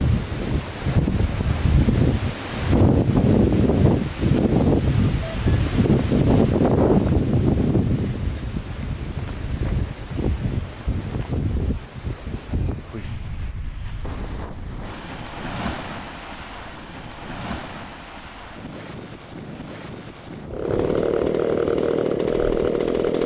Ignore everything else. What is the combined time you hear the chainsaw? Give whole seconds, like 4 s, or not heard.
3 s.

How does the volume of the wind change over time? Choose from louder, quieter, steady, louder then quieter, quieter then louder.
quieter.